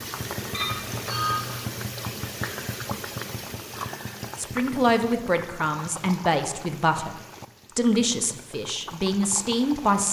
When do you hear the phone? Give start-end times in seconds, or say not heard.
0.5-1.6.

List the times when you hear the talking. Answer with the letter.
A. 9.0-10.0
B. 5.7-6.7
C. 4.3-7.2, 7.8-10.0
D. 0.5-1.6
C.